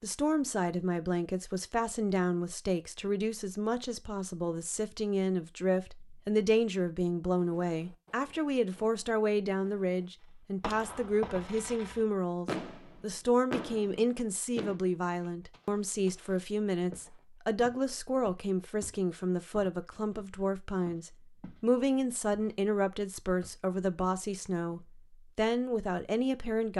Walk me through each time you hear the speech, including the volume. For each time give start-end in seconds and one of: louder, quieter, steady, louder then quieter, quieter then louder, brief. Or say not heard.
0.0-26.7 steady.